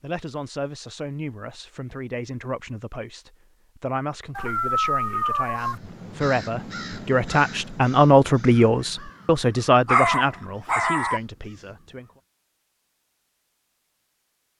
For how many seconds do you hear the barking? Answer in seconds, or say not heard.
3 s.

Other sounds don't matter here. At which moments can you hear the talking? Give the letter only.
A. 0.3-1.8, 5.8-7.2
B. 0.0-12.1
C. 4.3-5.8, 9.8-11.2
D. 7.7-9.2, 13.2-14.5
B.